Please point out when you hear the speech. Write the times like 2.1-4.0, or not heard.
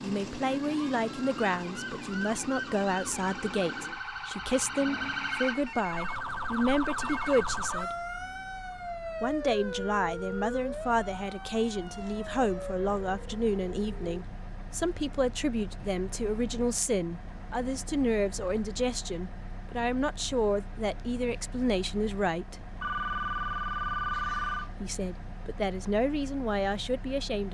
0.0-8.1, 9.2-22.6, 24.8-27.4.